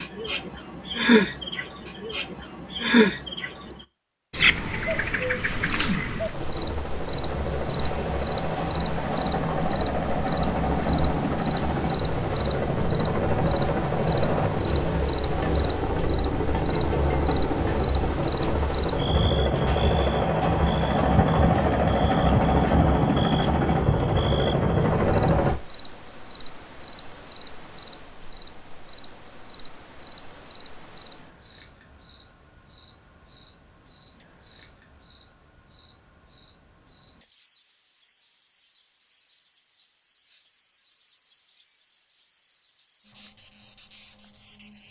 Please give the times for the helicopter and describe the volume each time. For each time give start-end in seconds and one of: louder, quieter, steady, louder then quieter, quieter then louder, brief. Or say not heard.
6.3-25.6 louder.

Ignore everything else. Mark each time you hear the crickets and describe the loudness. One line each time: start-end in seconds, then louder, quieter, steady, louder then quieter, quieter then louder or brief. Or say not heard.
0.0-44.8 quieter.